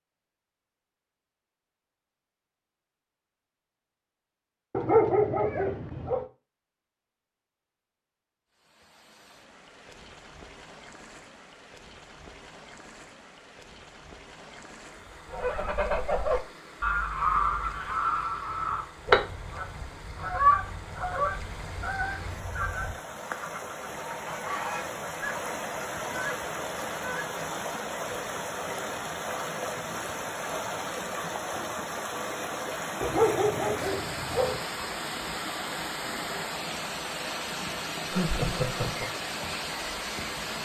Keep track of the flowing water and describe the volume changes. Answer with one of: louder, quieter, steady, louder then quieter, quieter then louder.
louder.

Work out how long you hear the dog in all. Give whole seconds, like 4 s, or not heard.
3 s.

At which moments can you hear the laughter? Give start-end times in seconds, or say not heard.
38.1-39.1.